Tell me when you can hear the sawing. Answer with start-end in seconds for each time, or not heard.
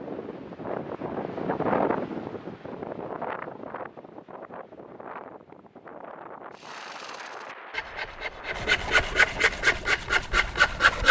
6.5-11.0.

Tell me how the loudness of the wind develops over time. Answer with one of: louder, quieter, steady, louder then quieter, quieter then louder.
quieter.